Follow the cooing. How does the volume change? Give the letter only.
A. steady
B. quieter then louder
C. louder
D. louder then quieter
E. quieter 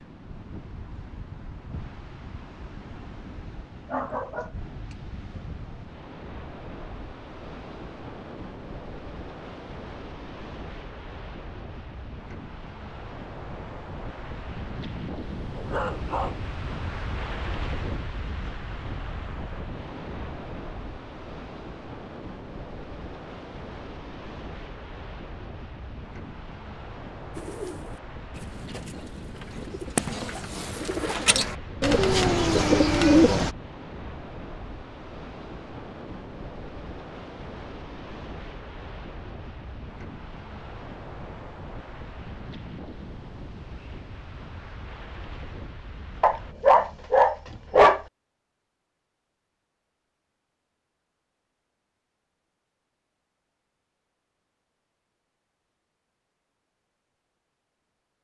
C.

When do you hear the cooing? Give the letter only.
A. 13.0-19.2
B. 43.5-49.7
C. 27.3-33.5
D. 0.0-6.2
C.